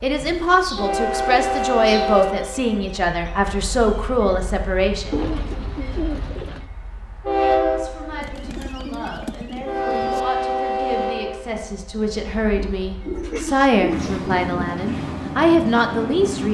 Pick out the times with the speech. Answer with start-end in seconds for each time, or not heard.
0.0-5.2, 7.4-16.4.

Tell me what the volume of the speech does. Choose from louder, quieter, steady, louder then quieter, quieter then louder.
quieter then louder.